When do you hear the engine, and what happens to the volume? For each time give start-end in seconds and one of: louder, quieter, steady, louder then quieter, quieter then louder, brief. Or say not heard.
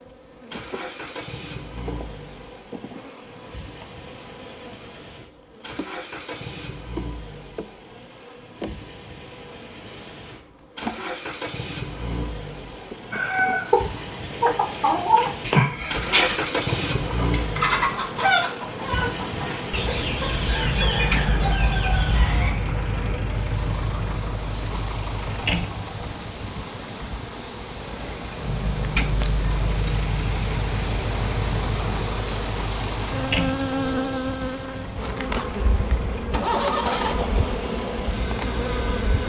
0.0-39.2 louder.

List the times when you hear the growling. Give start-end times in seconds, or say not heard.
not heard.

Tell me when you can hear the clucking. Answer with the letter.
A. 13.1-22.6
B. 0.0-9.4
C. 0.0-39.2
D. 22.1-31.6
A.